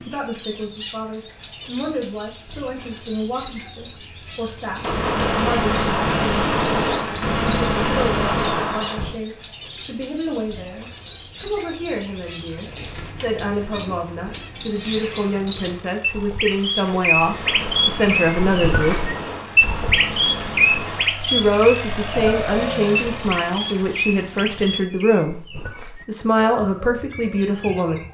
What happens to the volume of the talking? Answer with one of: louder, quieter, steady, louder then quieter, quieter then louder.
louder.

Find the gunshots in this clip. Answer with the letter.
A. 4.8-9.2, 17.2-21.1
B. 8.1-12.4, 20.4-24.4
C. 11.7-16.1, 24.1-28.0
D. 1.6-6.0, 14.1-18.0
A.